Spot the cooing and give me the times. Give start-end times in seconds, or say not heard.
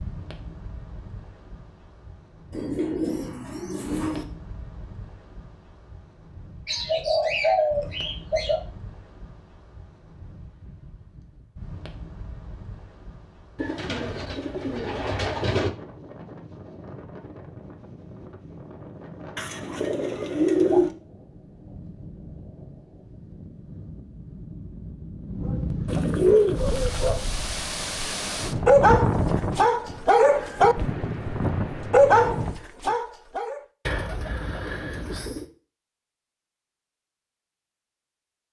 2.5-4.2, 6.7-8.6, 13.6-15.7, 19.4-20.9, 25.9-27.1, 33.9-35.5.